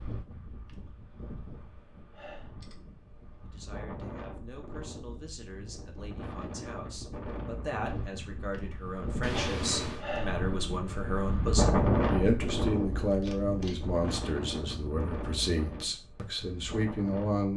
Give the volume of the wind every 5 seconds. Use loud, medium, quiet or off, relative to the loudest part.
quiet, medium, loud, medium.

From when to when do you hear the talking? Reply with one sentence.
The talking can be heard from 3.5 to 17.5 s.